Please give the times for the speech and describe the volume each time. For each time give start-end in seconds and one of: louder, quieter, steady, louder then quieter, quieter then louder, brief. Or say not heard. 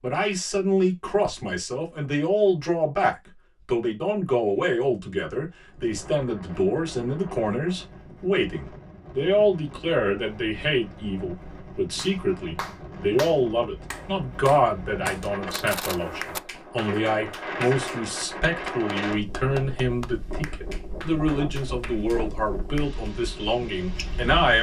0.0-24.5 steady.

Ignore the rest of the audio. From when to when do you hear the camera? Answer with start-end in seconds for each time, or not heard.
15.5-16.4.